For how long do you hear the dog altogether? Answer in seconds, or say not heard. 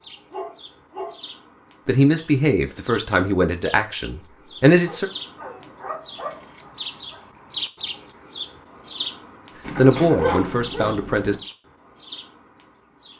5 s.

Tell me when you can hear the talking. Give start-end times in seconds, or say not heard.
1.9-5.0, 9.8-11.3.